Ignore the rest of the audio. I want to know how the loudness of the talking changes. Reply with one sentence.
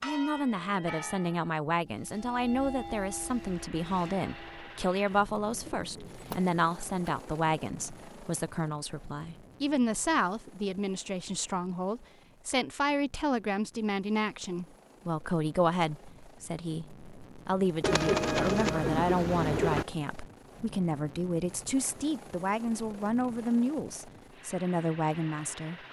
The loudness of the talking stays about the same.